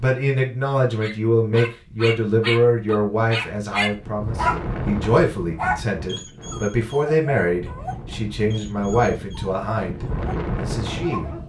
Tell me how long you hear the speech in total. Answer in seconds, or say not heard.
11 s.